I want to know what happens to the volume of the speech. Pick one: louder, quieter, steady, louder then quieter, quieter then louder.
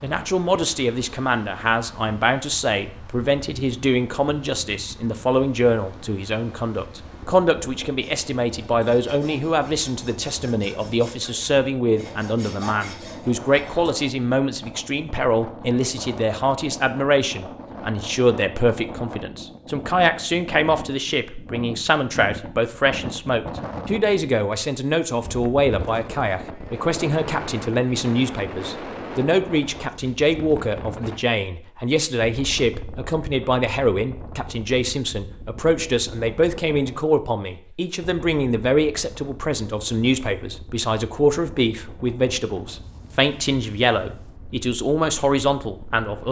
steady.